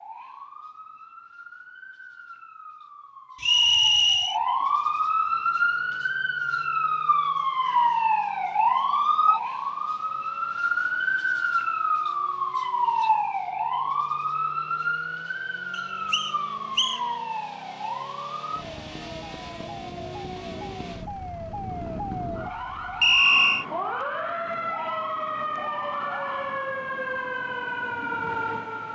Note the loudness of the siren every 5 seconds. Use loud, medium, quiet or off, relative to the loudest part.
medium, loud, loud, medium, medium, medium.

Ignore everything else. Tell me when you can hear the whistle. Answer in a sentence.
The whistle can be heard from 3.4 to 4.4 s, from 15.7 to 17.0 s and from 23.0 to 23.6 s.